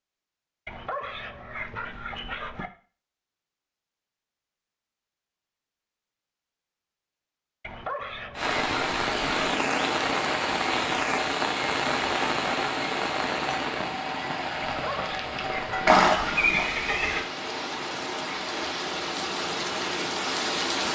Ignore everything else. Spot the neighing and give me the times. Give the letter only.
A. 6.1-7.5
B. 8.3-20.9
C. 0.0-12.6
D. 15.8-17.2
D.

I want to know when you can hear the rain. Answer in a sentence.
You can hear the rain from 8.3 to 20.9 s.